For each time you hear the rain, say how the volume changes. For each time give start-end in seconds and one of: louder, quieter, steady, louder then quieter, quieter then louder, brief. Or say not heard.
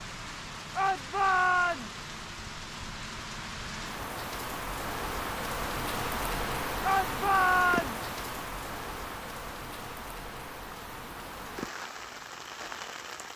0.0-13.3 louder then quieter.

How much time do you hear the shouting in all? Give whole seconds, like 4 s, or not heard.
2 s.